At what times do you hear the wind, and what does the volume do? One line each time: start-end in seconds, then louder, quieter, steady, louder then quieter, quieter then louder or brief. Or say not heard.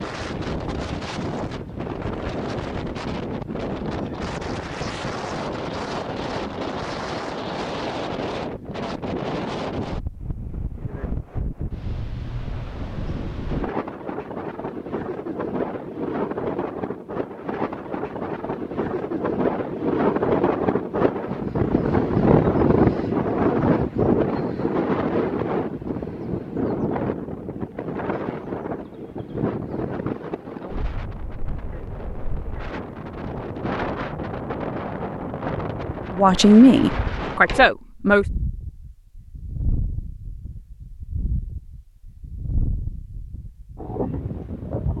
0.0-44.9 louder then quieter.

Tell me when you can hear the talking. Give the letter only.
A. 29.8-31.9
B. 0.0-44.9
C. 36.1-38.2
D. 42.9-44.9
C.